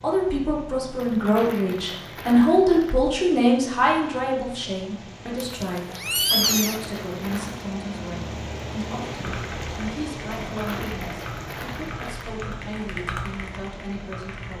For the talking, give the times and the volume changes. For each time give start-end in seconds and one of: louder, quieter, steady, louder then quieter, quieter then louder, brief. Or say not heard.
0.0-14.5 quieter.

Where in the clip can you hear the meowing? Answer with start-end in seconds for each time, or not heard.
5.4-6.8.